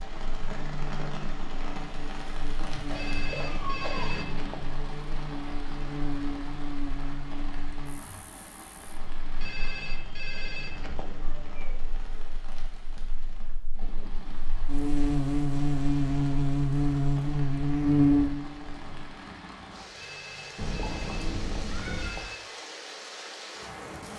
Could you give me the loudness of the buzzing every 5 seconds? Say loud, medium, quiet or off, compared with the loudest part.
quiet, quiet, quiet, loud, off.